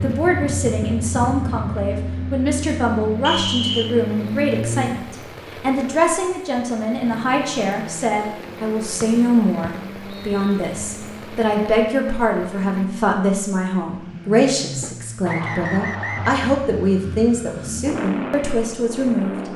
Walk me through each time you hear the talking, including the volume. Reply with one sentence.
The talking can be heard from 0.0 to 19.5 s, at a steady volume.